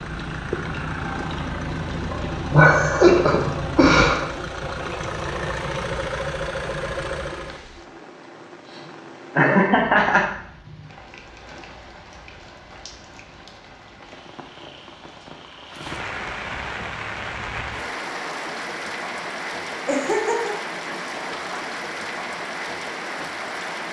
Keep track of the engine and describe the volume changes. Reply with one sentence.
The volume of the engine stays about the same.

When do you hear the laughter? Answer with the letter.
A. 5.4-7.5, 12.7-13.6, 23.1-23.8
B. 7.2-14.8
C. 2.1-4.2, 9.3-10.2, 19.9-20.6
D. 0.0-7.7
C.